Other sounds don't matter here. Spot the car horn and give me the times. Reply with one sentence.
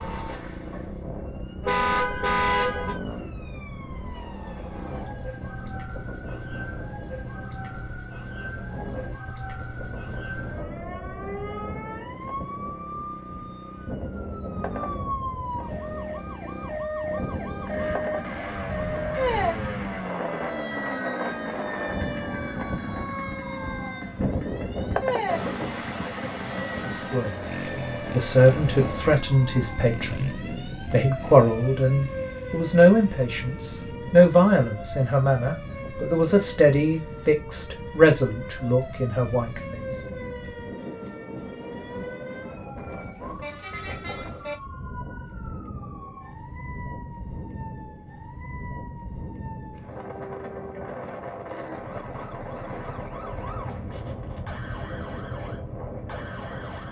The car horn can be heard from 1.6 to 3.0 s and from 43.0 to 44.5 s.